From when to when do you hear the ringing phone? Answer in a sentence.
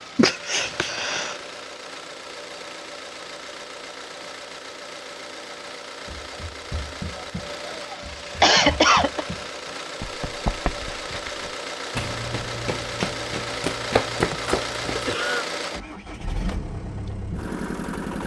The ringing phone can't be heard in this clip.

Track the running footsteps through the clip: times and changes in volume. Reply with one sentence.
You can hear the running footsteps from 6.0 to 15.2 s, getting louder.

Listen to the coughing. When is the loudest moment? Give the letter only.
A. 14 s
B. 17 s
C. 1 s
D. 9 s
D.